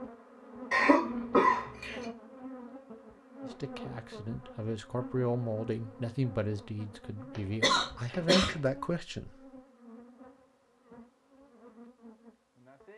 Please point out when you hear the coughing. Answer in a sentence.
The coughing can be heard from 0.7 to 2.0 s and from 7.6 to 8.5 s.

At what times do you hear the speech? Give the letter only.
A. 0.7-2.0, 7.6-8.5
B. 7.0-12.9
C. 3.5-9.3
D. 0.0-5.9
C.